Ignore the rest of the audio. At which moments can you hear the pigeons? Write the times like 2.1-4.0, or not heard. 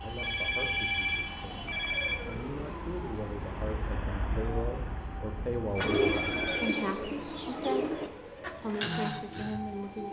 5.8-10.0.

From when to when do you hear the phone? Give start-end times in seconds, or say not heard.
0.1-2.1, 5.8-6.8.